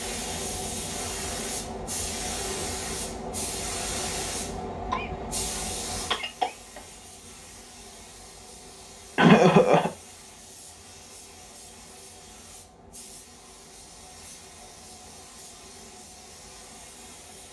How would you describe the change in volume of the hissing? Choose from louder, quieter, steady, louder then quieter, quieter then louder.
quieter.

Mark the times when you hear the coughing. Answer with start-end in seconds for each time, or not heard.
4.9-6.8, 9.2-9.9.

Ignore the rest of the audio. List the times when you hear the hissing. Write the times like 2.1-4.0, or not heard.
0.0-17.4.